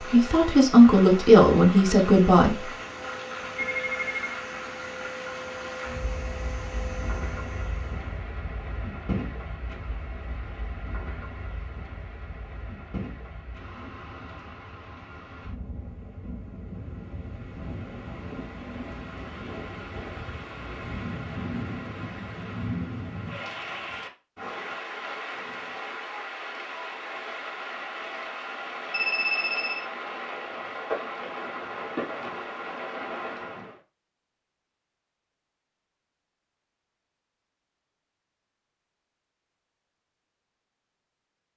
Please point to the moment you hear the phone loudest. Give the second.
29 s.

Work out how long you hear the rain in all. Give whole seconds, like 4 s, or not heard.
34 s.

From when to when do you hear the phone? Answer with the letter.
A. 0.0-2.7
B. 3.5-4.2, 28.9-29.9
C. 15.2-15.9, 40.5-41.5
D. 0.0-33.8
B.